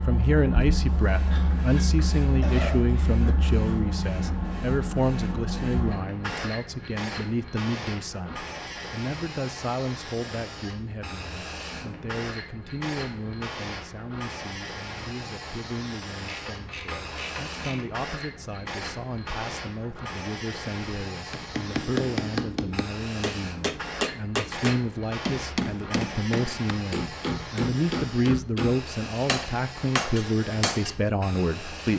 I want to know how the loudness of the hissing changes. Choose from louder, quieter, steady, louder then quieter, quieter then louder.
quieter.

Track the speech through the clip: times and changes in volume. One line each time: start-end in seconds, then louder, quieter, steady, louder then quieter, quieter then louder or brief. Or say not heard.
0.1-31.9 quieter then louder.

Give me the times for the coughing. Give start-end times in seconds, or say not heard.
2.2-2.8.